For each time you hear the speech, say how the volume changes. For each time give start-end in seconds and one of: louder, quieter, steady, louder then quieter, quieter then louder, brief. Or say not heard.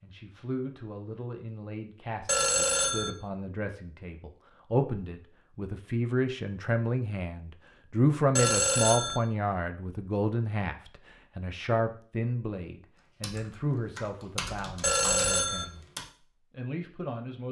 0.0-15.8 louder then quieter
16.5-17.4 brief.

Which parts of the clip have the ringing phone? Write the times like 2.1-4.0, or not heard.
2.2-3.1, 8.3-9.2, 14.8-15.7.